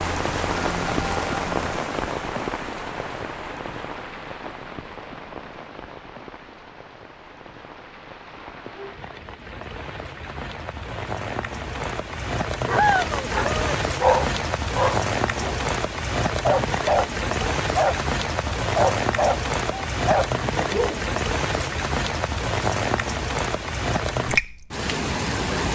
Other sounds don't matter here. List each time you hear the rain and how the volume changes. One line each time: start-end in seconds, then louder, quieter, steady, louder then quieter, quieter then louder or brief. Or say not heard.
0.0-25.7 quieter then louder.